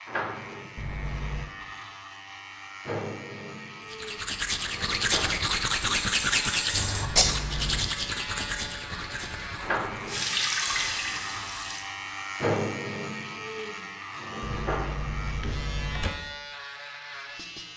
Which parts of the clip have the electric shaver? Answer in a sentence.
The electric shaver can be heard from 0.0 to 17.7 s.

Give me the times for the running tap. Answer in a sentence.
The running tap can be heard from 10.1 to 11.8 s.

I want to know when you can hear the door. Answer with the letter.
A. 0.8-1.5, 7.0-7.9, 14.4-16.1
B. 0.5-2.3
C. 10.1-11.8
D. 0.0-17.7
A.